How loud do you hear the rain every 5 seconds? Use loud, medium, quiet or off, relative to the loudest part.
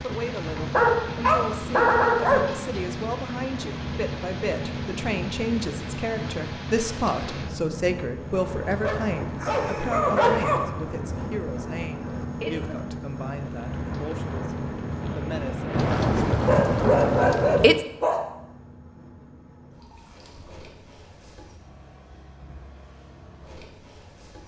quiet, quiet, quiet, loud, off.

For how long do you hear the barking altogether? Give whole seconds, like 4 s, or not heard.
5 s.